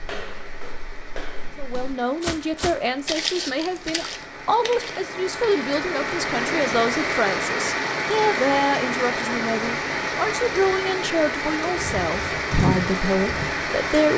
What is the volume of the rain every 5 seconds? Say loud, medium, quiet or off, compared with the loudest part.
quiet, loud, loud.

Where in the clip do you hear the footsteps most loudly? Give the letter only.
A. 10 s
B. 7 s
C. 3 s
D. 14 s
C.